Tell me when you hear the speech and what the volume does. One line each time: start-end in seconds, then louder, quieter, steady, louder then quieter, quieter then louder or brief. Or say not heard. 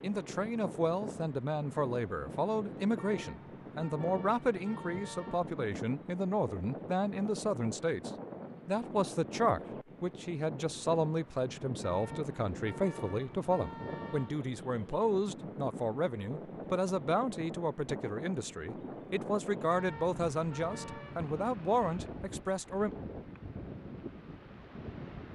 0.0-22.9 steady.